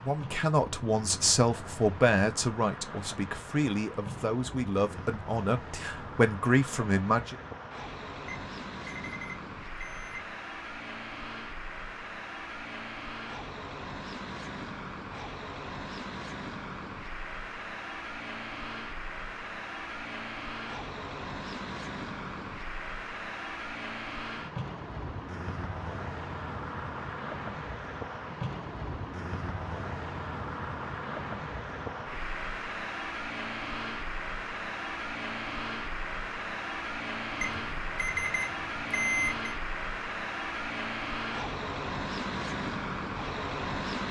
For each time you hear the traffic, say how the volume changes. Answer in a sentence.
The traffic can be heard from 0.0 to 44.0 s, getting louder.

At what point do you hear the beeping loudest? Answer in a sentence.
The loudest moment of the beeping is at 39 seconds.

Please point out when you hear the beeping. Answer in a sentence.
The beeping can be heard from 8.2 to 10.2 s and from 37.4 to 39.5 s.